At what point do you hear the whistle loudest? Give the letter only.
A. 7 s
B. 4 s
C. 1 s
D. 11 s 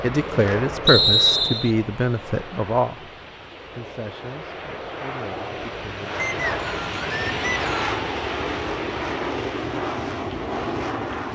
C.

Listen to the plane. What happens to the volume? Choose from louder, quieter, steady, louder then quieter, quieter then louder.
quieter then louder.